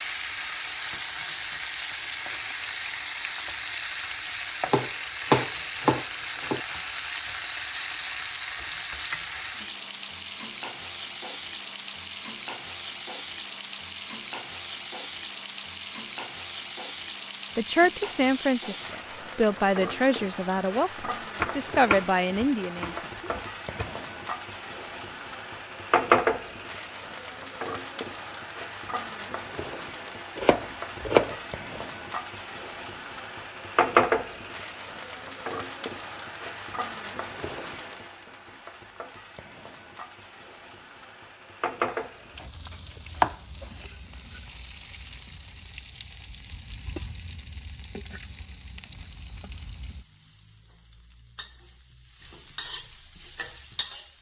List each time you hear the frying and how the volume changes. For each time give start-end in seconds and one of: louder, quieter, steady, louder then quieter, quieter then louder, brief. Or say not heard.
0.0-54.1 quieter.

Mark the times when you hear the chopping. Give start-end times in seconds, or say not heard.
4.7-6.6, 21.4-23.9, 30.4-31.8, 41.9-43.9.